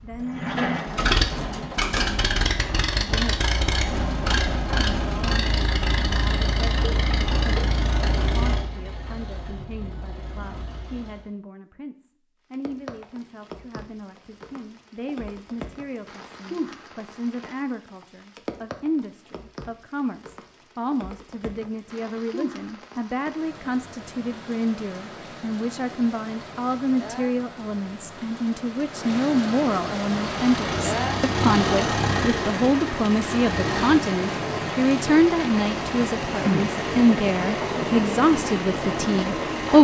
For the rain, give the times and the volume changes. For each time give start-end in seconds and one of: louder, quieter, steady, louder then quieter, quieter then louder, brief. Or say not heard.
12.5-39.7 louder.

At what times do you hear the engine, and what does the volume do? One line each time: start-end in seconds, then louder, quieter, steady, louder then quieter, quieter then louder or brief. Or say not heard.
0.0-11.3 quieter
30.1-39.7 quieter.